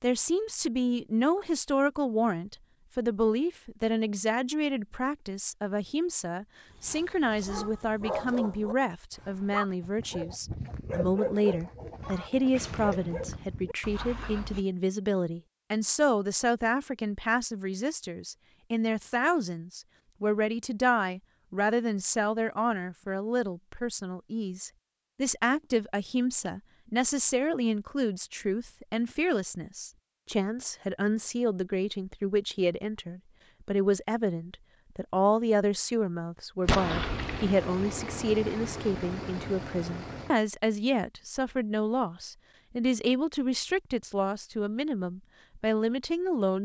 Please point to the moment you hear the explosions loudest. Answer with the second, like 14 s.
37 s.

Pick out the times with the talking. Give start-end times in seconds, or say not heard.
0.0-46.6.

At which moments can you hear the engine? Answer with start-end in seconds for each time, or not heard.
36.6-40.4.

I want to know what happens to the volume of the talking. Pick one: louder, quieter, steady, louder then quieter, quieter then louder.
steady.